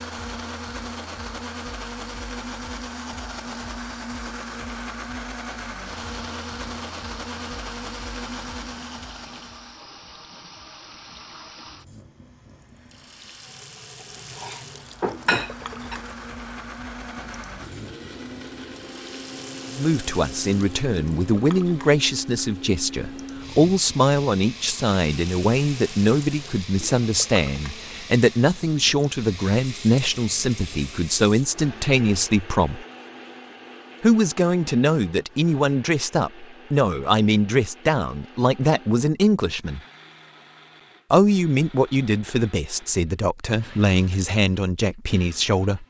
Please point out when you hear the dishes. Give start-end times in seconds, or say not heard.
14.3-15.9.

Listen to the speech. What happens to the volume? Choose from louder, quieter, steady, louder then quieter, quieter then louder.
steady.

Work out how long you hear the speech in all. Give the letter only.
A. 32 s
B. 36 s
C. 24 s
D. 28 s
C.